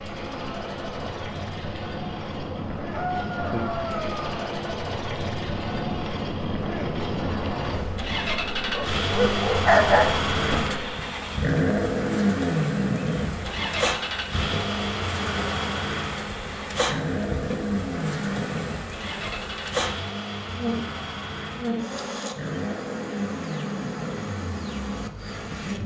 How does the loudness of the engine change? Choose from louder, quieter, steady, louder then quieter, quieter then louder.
louder then quieter.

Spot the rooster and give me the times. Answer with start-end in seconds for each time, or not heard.
2.9-4.3.